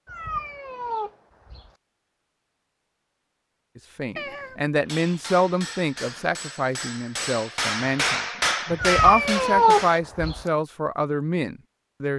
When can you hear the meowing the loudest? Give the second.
10 s.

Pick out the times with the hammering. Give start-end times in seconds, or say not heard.
4.8-10.0.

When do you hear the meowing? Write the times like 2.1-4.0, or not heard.
0.1-1.7, 4.2-4.6, 8.8-10.4.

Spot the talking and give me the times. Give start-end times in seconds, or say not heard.
3.8-12.1.